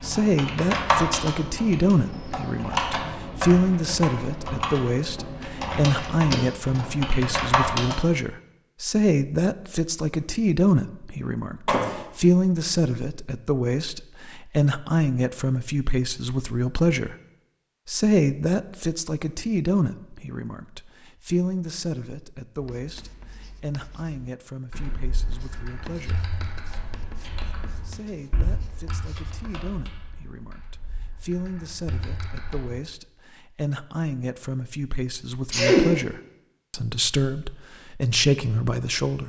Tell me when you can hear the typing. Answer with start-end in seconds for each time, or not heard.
0.0-8.0, 24.7-32.8.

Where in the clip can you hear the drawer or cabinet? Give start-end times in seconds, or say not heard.
not heard.